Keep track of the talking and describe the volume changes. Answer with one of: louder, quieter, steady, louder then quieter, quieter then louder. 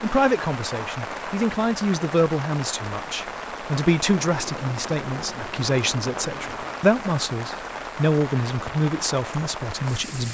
steady.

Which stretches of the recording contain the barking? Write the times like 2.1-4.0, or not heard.
not heard.